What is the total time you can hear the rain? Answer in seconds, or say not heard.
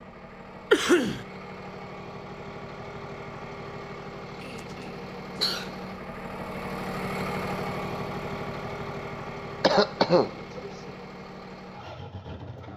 not heard.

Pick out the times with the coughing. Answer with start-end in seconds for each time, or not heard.
0.7-1.2, 4.4-5.7, 9.6-10.9.